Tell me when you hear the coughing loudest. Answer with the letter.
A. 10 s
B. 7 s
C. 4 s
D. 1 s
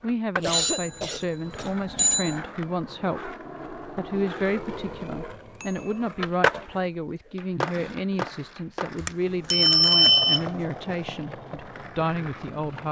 D.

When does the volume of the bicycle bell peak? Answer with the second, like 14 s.
10 s.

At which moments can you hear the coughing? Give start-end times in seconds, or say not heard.
0.3-1.7, 7.1-8.2.